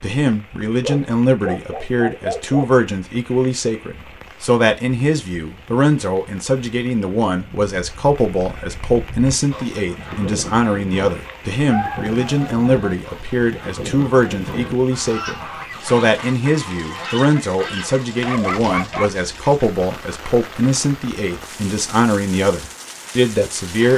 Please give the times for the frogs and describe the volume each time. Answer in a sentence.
The frogs can't be heard in this clip.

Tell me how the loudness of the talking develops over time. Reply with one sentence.
The loudness of the talking stays about the same.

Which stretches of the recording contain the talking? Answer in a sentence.
You can hear the talking from 0.0 to 23.9 s.